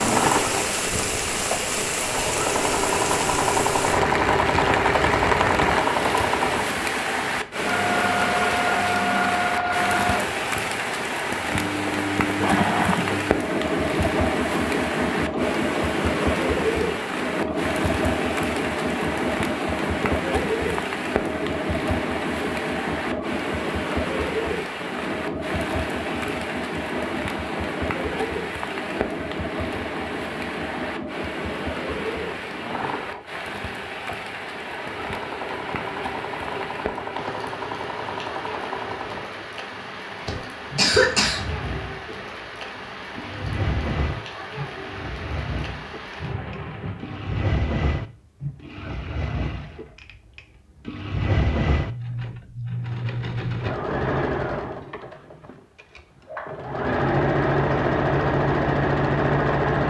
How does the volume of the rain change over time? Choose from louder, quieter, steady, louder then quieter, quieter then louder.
quieter.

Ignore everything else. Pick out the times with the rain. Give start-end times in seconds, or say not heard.
0.0-47.5.